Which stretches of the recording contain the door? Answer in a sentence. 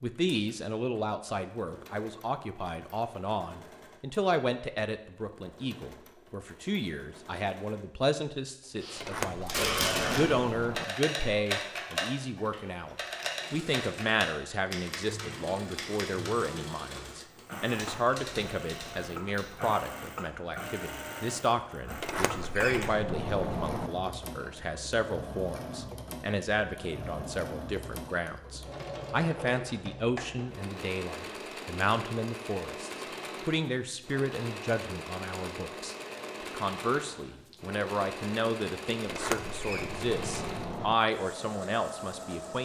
The door can be heard from 8.9 to 10.8 s, from 22.0 to 23.9 s and from 39.0 to 41.0 s.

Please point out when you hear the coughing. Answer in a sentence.
The coughing can be heard from 8.8 to 10.7 s.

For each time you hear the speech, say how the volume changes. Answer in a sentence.
You can hear the speech from 0.0 to 42.5 s, at a steady volume.